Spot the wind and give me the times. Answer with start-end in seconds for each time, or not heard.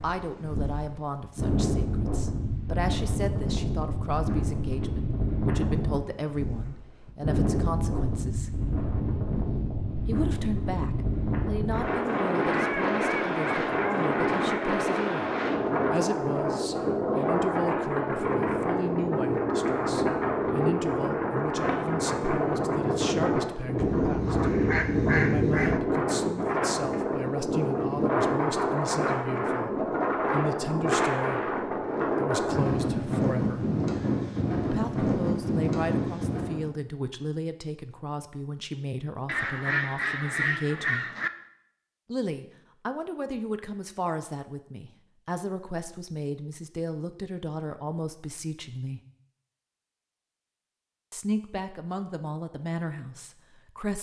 0.0-36.7.